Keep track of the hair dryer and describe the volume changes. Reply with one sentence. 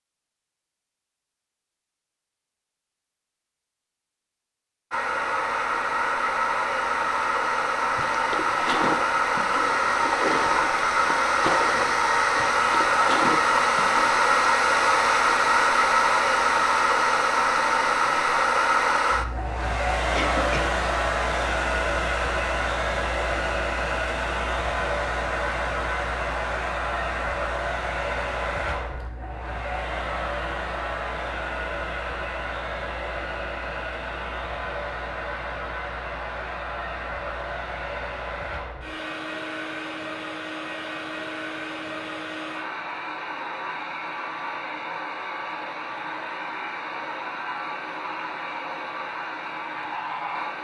The loudness of the hair dryer goes down.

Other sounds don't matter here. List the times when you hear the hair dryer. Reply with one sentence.
The hair dryer can be heard from 4.9 to 50.5 s.